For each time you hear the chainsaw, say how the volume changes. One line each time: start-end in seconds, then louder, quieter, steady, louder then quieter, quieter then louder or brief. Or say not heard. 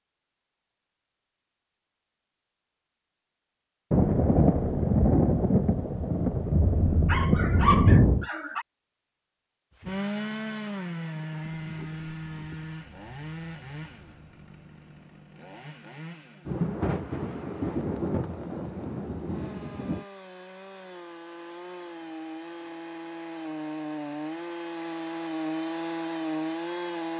9.8-27.1 quieter then louder.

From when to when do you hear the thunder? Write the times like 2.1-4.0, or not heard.
3.9-8.2, 16.4-20.1.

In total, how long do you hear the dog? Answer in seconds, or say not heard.
2 s.